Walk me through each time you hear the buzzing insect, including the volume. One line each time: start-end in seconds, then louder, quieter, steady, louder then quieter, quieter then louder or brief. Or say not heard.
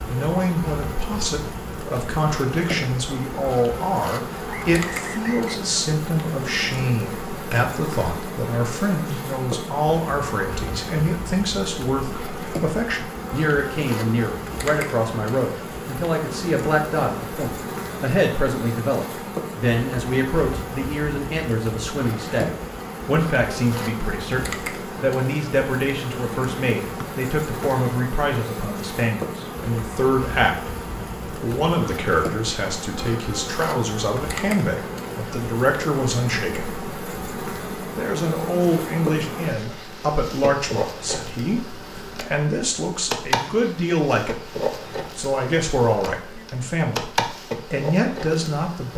0.0-48.9 steady.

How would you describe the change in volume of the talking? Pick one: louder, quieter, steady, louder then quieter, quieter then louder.
steady.